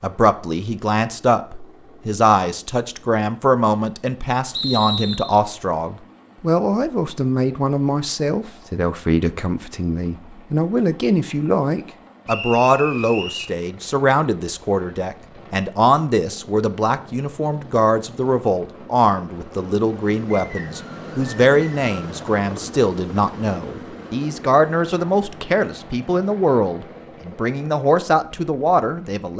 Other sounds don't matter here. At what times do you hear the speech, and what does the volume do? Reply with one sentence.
You can hear the speech from 0.0 to 29.3 s, at a steady volume.